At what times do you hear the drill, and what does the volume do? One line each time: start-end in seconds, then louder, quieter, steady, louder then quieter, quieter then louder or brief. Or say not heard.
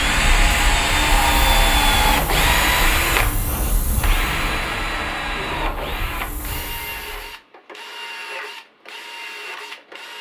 0.0-10.1 quieter.